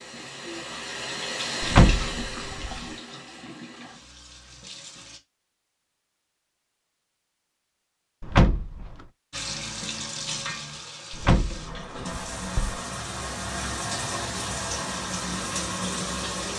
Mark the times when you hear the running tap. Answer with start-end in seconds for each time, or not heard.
0.0-5.2, 9.3-16.5.